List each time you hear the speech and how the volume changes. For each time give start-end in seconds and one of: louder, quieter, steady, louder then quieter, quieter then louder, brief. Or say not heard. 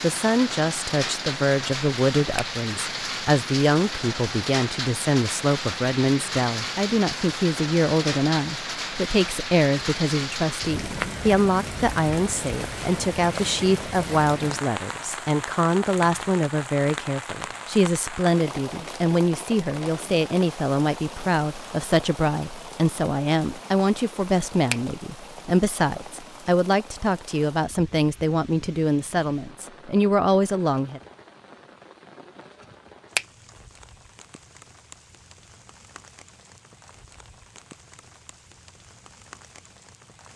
0.0-31.0 steady.